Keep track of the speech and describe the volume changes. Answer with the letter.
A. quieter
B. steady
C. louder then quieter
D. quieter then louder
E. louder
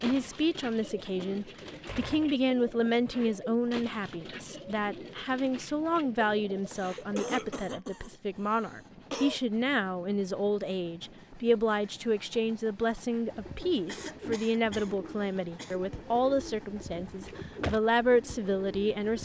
B.